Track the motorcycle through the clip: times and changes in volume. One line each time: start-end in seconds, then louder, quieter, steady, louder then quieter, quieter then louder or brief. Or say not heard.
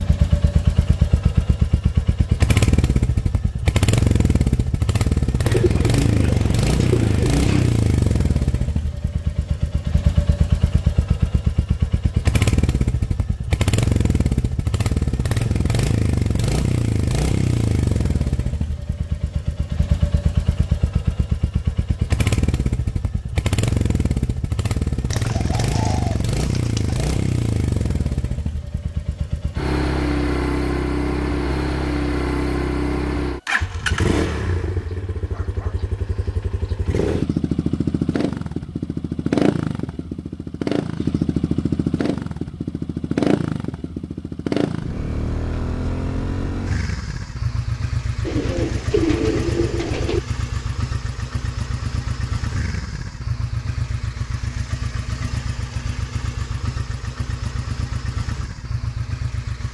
0.0-59.6 quieter.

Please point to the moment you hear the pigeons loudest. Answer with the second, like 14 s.
49 s.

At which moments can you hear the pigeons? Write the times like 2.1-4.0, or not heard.
5.5-7.8, 25.1-27.1, 48.2-50.2.